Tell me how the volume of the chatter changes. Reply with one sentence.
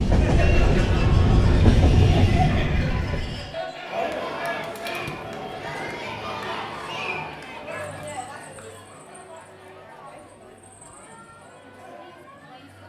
The loudness of the chatter goes down.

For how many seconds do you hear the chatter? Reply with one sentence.
The chatter can be heard for 13 seconds in total.